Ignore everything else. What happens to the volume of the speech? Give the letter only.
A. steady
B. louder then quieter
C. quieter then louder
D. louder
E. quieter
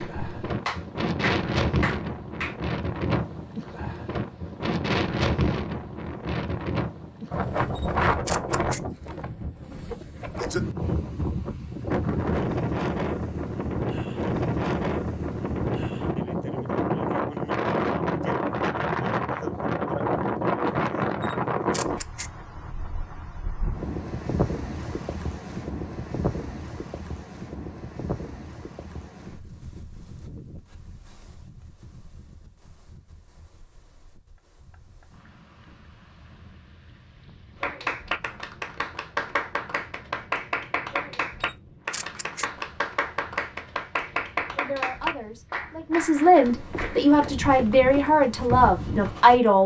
D.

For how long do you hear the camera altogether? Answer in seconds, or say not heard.
3 s.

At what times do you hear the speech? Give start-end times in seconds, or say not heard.
44.5-49.6.